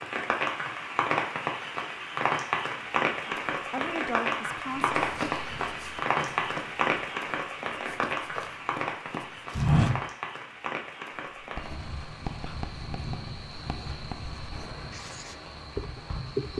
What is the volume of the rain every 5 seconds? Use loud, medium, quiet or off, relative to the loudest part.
loud, loud, medium, quiet.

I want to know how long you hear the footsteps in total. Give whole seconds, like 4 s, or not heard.
5 s.